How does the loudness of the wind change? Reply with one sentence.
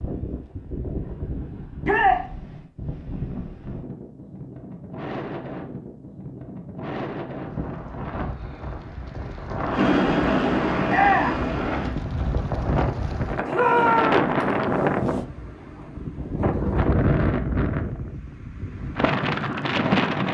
The loudness of the wind goes up.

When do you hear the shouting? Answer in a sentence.
You can hear the shouting from 1.8 to 2.2 s, from 10.8 to 11.4 s and from 13.5 to 14.2 s.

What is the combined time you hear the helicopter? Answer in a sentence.
The helicopter can be heard for 2 seconds in total.